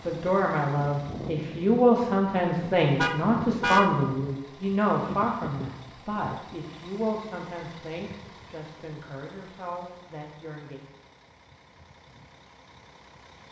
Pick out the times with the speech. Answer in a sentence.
You can hear the speech from 0.0 to 10.8 s.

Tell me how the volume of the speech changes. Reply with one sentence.
The loudness of the speech goes down.